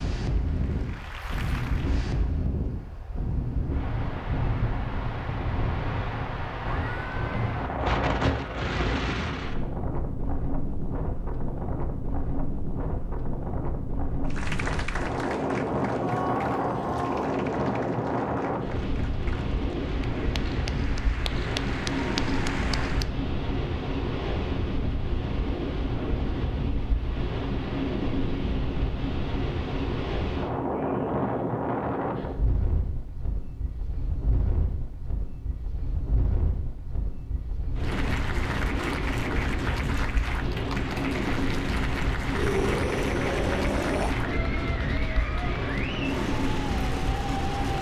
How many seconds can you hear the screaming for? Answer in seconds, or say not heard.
4 s.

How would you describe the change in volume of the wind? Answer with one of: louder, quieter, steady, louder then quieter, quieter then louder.
steady.